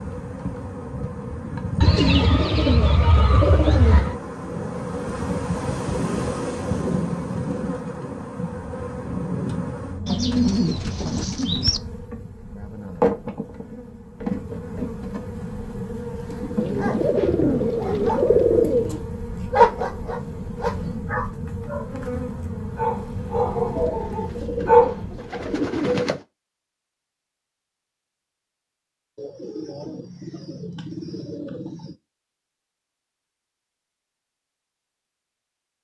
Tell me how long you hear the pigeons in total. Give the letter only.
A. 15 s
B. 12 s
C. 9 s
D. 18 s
B.